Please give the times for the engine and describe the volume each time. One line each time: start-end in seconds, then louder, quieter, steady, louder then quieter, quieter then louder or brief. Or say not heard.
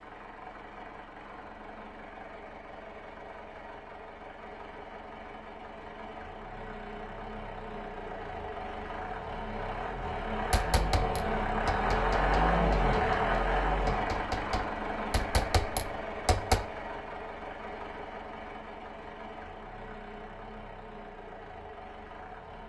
0.0-22.6 louder then quieter.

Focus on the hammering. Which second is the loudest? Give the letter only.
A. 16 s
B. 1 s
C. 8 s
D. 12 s
A.